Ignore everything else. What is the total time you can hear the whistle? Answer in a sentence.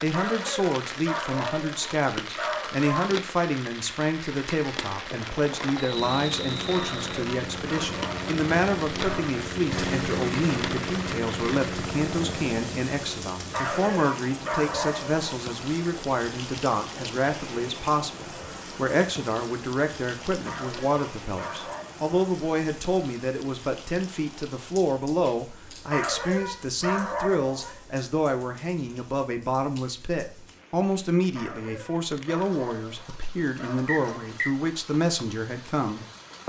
The whistle can be heard for 2 seconds in total.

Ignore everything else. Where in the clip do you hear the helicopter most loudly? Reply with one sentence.
The volume of the helicopter peaks at 10 seconds.